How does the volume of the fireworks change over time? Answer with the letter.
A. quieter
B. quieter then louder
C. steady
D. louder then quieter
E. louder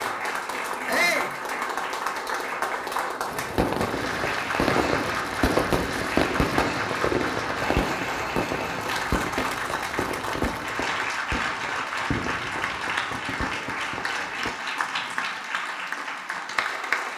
A.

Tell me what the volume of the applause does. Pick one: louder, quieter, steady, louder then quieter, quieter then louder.
steady.